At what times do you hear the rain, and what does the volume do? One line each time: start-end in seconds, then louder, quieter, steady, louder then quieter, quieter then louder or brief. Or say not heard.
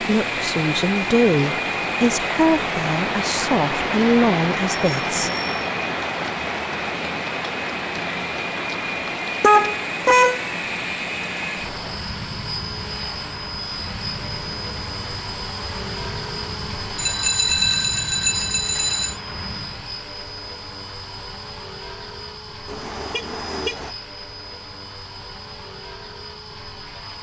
0.0-20.1 quieter.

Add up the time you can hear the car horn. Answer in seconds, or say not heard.
2 s.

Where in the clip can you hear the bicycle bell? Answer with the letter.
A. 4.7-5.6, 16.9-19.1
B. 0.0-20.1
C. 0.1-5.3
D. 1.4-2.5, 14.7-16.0
A.